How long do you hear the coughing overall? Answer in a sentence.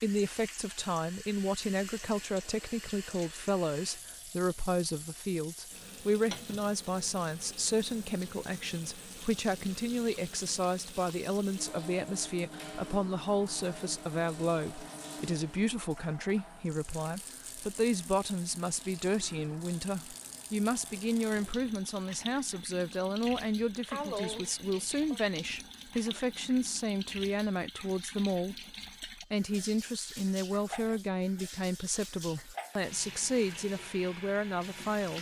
You can hear the coughing for 2 seconds altogether.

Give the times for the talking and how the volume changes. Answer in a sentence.
You can hear the talking from 0.0 to 35.1 s, at a steady volume.